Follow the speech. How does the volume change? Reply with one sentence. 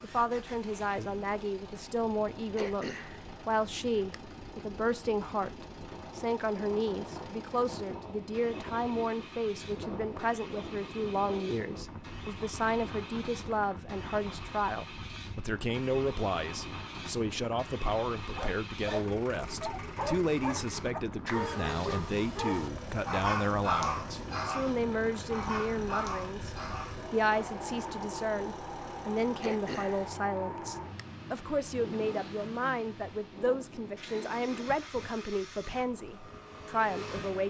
The volume of the speech stays about the same.